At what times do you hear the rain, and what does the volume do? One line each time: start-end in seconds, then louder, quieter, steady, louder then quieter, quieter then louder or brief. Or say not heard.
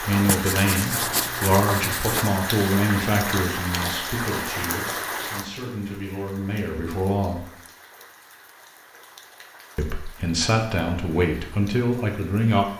0.0-12.7 quieter.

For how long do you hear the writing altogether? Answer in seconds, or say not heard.
2 s.